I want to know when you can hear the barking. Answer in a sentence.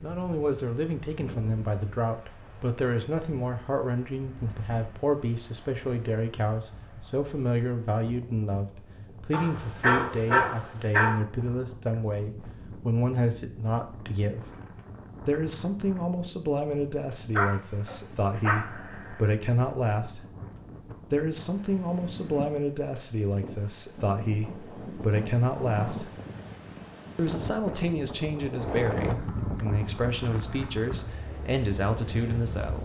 You can hear the barking from 9.3 to 11.2 s and from 17.4 to 19.3 s.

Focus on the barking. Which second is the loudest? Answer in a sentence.
The volume of the barking peaks at 10 seconds.